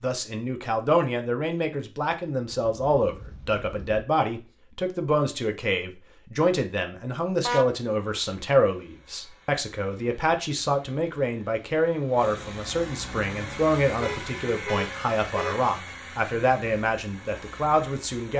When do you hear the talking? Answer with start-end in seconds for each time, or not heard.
0.0-18.3.